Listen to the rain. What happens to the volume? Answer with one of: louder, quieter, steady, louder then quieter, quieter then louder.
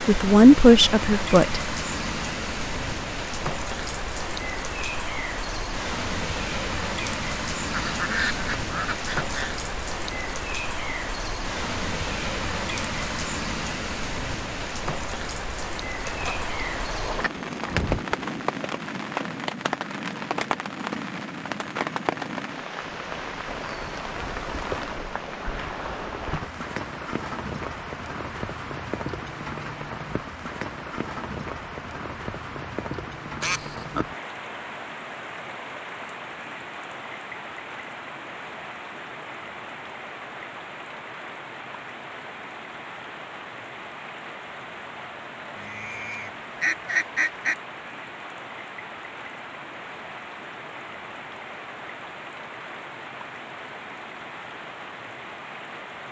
quieter.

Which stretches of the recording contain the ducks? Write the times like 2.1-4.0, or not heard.
7.7-9.6, 16.0-18.1, 33.4-34.0, 45.5-47.5.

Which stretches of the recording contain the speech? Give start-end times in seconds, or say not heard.
0.1-1.6.